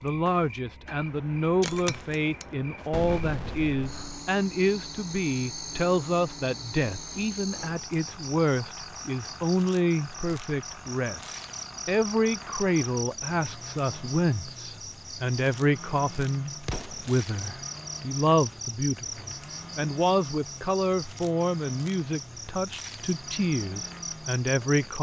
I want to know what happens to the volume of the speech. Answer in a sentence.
The volume of the speech stays about the same.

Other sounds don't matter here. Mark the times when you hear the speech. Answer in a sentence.
You can hear the speech from 0.0 to 24.9 s.